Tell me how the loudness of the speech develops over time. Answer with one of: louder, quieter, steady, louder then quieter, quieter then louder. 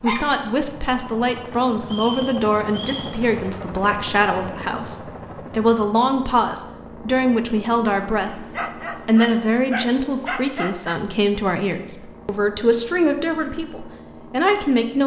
steady.